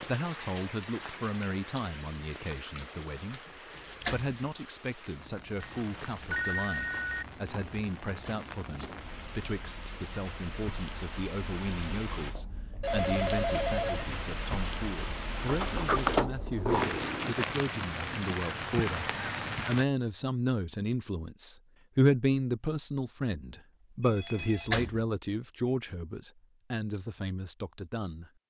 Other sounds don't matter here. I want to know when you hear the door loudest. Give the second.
16 s.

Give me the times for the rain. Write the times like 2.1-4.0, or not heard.
0.0-19.9.